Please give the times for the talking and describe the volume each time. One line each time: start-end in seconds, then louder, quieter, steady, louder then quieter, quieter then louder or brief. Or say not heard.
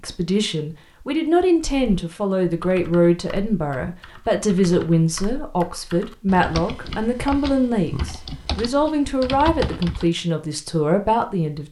0.0-11.6 steady.